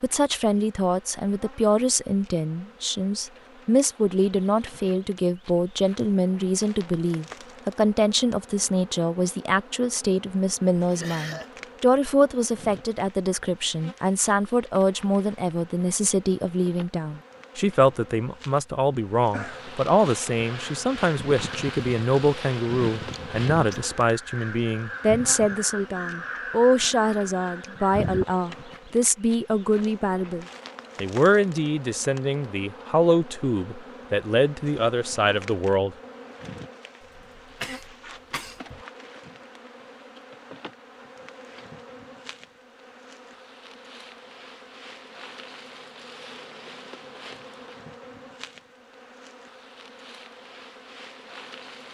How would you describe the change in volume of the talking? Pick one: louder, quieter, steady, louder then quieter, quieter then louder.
steady.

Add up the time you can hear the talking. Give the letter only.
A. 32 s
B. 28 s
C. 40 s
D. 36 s
D.